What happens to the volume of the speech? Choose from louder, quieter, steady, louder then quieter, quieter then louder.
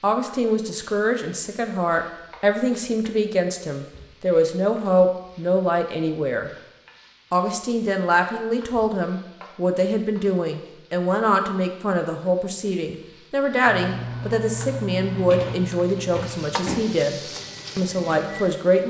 steady.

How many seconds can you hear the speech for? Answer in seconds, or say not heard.
18 s.